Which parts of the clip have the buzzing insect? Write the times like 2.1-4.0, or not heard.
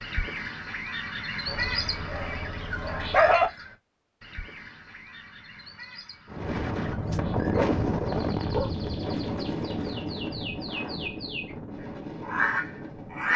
not heard.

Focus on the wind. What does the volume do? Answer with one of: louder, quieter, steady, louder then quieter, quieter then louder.
quieter.